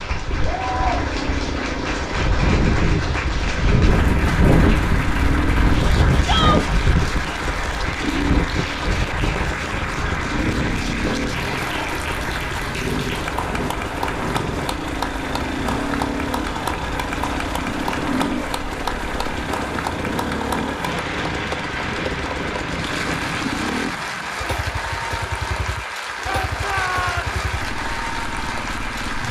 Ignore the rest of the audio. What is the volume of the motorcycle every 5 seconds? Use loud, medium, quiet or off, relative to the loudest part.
loud, loud, loud, loud, loud, medium.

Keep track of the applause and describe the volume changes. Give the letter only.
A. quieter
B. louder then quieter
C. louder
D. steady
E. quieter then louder
D.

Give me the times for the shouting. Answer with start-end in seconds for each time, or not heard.
6.2-6.7, 26.2-27.4.